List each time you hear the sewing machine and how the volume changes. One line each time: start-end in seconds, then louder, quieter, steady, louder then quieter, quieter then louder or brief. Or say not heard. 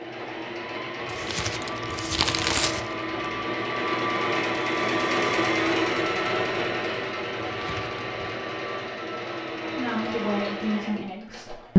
0.0-11.7 louder then quieter.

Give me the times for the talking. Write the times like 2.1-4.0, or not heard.
9.7-11.7.